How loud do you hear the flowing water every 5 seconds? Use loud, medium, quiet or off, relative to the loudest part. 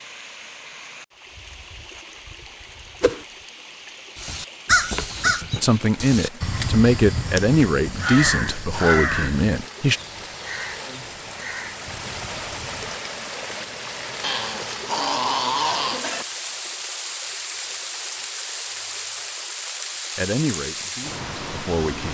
medium, medium, loud, loud, loud.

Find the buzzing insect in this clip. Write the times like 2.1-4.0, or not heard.
not heard.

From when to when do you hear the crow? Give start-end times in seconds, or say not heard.
4.2-13.0.